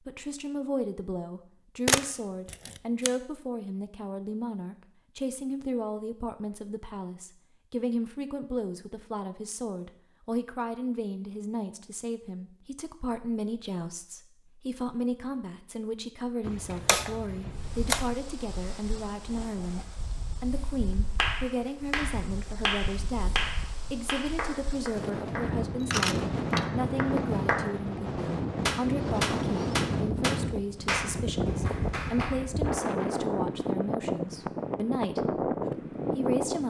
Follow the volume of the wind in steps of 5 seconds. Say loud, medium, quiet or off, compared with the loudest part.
off, off, off, quiet, quiet, loud, loud, loud.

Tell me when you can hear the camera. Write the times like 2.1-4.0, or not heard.
1.9-3.1, 16.4-18.1, 25.8-26.7.